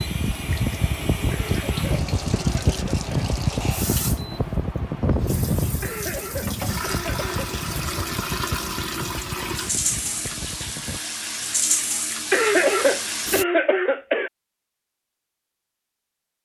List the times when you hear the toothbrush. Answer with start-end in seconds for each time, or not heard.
not heard.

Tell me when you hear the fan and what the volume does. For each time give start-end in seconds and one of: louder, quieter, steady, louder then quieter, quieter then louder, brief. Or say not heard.
0.0-11.0 quieter.